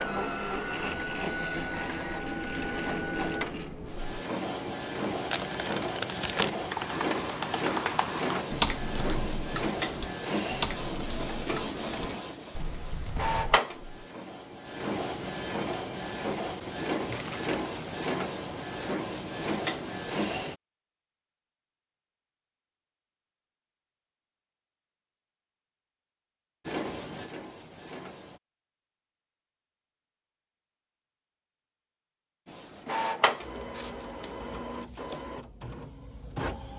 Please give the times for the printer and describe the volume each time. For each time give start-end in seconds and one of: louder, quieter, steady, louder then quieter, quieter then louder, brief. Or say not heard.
0.0-20.6 steady
26.6-28.4 brief
32.5-36.7 quieter.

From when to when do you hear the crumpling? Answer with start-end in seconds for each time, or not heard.
5.1-6.5, 17.1-17.8, 33.5-35.2.